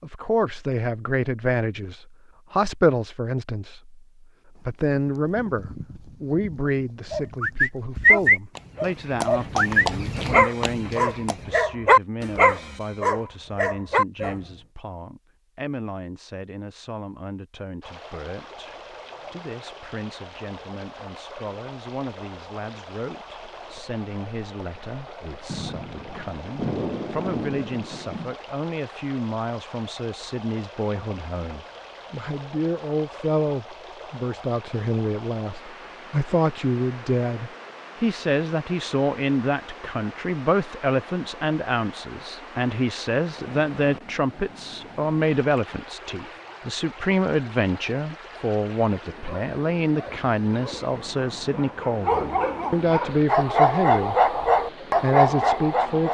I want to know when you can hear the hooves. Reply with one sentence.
You can hear the hooves from 4.5 to 11.7 s.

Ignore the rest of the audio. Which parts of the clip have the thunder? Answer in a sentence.
You can hear the thunder from 25.4 to 28.4 s.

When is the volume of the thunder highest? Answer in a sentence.
The loudest moment of the thunder is at 27 seconds.